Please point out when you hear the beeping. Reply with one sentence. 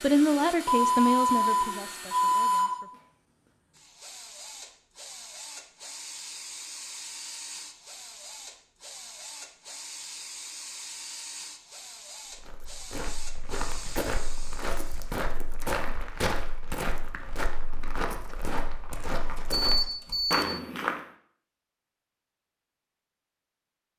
You can hear the beeping from 0.7 to 2.7 s and from 19.4 to 20.4 s.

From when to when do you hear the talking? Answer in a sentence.
You can hear the talking from 0.0 to 2.9 s.